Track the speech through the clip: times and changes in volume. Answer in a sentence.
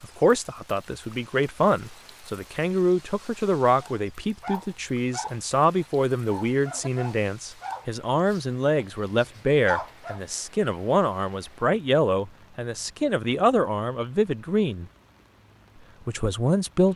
The speech can be heard from 0.0 to 14.8 s, at a steady volume; and briefly from 16.1 to 16.9 s.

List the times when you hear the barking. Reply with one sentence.
The barking can be heard from 3.8 to 10.2 s.